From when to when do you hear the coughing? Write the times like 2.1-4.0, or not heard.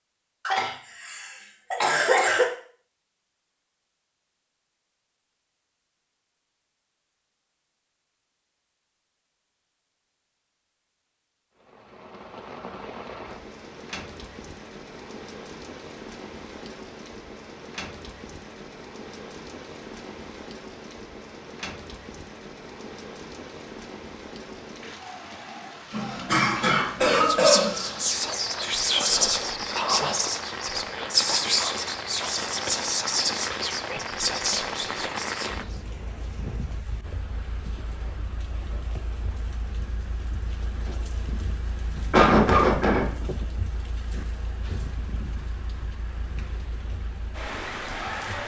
0.5-2.5, 25.9-27.9, 42.1-43.0.